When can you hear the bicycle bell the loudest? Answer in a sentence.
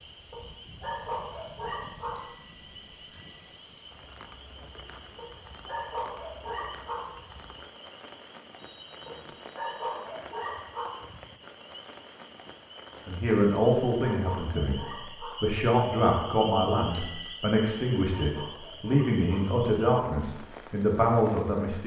The volume of the bicycle bell peaks at 17 seconds.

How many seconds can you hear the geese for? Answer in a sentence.
The geese can't be heard in this clip.